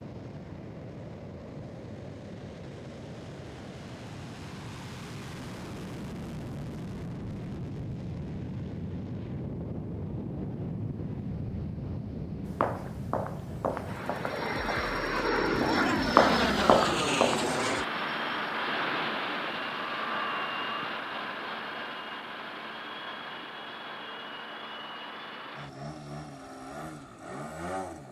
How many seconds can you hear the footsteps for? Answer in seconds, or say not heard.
5 s.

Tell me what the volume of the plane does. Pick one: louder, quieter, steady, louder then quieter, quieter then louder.
louder then quieter.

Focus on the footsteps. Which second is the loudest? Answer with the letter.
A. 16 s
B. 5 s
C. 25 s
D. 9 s
A.